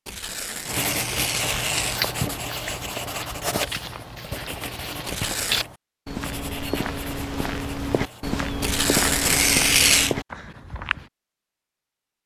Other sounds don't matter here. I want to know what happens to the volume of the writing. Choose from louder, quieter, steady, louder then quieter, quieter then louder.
quieter.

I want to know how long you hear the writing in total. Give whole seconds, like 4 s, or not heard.
8 s.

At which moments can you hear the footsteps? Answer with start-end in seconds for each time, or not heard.
1.6-11.1.